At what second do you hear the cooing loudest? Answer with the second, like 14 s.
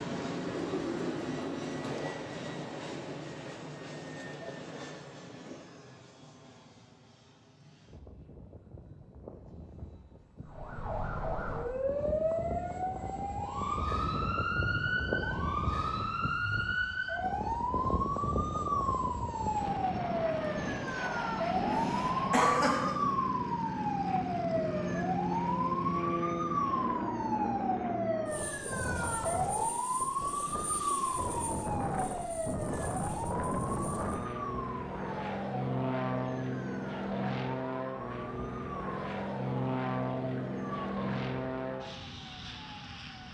1 s.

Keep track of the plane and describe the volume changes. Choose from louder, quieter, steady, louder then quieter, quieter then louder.
louder.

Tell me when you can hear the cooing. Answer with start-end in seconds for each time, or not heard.
0.2-5.6.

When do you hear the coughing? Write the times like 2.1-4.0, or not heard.
21.6-22.9.